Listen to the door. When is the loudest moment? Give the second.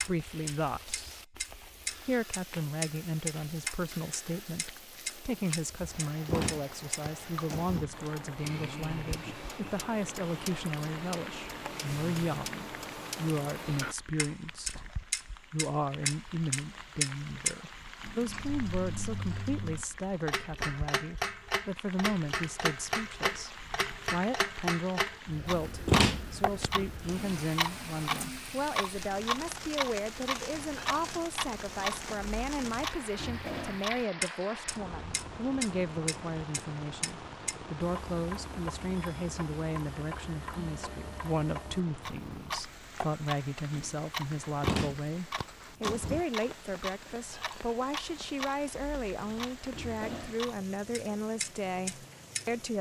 26 s.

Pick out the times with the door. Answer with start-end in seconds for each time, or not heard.
6.2-8.1, 25.9-27.1, 44.6-46.2.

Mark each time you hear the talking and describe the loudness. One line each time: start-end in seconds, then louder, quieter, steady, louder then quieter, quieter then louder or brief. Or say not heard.
0.0-1.3 brief
2.0-52.7 steady.